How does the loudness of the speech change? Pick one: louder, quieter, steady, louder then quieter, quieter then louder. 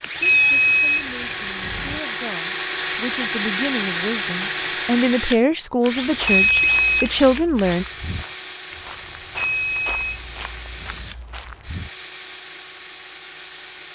louder.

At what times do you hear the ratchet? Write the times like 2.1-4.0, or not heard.
not heard.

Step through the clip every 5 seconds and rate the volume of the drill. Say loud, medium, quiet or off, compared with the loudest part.
loud, medium, quiet.